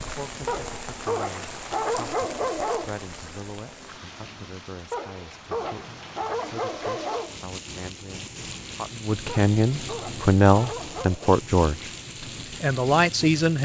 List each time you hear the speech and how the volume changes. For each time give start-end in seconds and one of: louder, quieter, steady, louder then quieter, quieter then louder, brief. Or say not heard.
0.0-13.6 louder.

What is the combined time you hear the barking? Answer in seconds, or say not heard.
7 s.